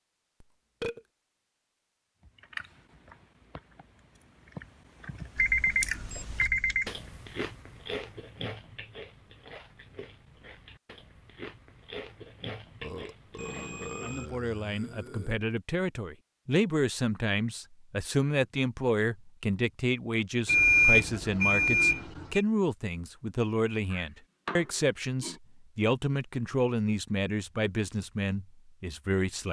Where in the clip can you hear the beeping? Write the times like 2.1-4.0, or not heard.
5.3-6.9, 13.3-14.3, 20.4-22.4.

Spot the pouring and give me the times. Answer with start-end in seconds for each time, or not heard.
not heard.